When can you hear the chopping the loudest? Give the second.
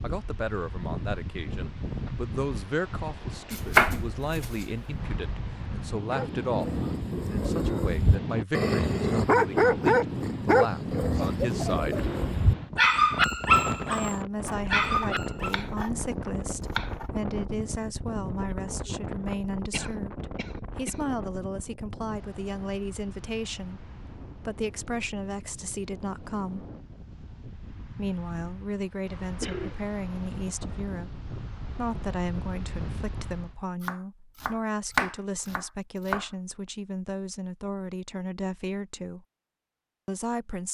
4 s.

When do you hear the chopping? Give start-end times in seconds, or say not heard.
3.5-4.8, 14.4-17.1, 33.8-36.3.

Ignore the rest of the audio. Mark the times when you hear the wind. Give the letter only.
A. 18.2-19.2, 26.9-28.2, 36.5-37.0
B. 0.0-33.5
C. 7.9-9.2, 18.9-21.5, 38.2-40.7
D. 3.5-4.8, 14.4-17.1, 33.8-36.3
B.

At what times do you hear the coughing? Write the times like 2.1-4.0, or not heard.
11.1-12.1, 19.7-21.1, 29.4-29.9.